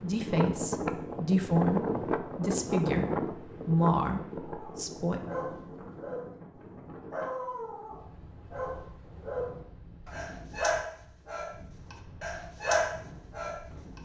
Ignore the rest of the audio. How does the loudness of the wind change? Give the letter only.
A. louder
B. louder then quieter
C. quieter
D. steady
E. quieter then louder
C.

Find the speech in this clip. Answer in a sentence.
You can hear the speech from 0.0 to 5.2 s.